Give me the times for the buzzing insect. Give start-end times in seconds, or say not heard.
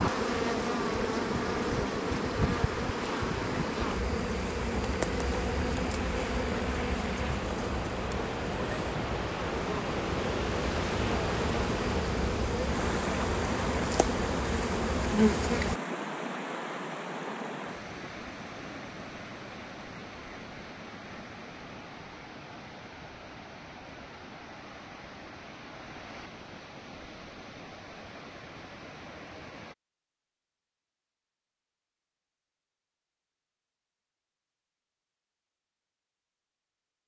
0.0-15.8.